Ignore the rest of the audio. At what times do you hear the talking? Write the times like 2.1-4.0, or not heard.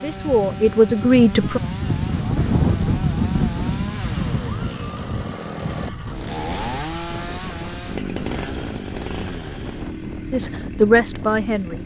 0.0-1.6, 10.3-11.8.